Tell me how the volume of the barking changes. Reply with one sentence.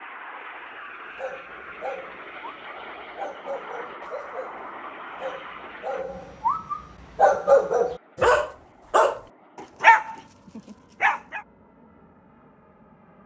The loudness of the barking goes up.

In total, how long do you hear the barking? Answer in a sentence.
The barking can be heard for 11 seconds in total.